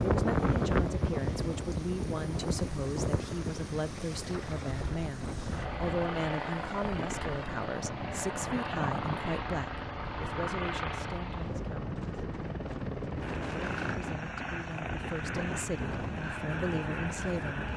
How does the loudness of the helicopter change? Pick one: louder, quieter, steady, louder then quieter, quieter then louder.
louder.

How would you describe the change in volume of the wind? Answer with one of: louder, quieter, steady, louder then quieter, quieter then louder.
quieter.